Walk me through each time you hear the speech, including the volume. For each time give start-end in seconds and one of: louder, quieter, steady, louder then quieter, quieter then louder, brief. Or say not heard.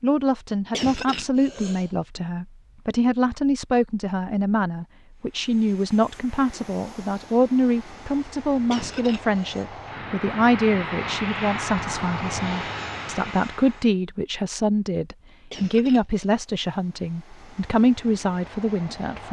0.0-19.2 steady.